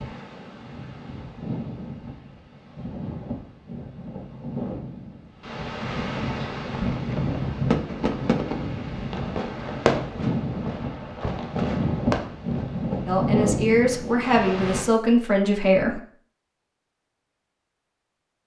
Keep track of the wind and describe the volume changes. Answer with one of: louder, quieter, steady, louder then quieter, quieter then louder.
louder.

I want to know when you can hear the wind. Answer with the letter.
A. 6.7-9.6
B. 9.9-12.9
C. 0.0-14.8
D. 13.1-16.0
C.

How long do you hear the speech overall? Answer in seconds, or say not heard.
3 s.